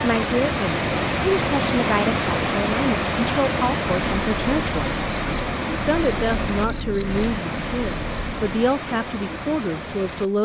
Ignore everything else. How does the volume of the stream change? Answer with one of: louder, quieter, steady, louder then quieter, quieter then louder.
quieter.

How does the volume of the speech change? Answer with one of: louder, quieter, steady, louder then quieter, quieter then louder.
steady.